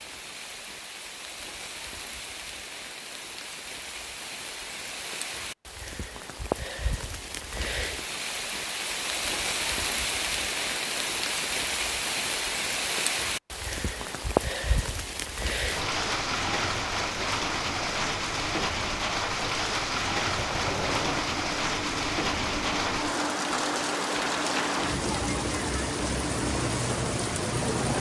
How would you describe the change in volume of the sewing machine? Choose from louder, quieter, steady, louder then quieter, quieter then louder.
steady.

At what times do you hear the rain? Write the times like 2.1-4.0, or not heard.
0.0-27.9.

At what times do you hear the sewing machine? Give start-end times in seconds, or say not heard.
20.3-27.9.